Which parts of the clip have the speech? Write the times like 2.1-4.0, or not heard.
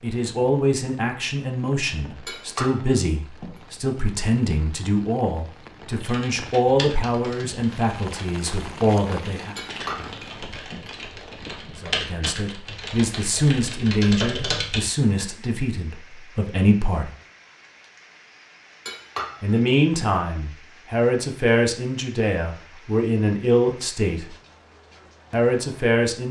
0.0-9.6, 11.8-17.1, 19.4-24.4, 25.3-26.2.